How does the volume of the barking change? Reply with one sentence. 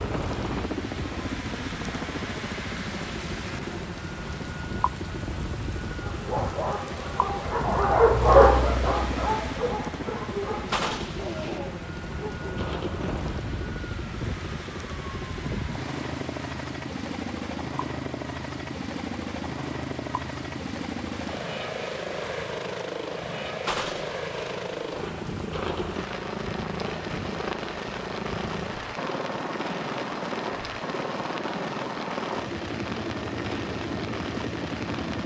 The loudness of the barking goes up, then down.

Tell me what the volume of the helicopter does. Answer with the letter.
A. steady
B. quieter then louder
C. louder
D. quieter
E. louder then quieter
A.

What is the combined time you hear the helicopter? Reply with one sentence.
You can hear the helicopter for 35 seconds altogether.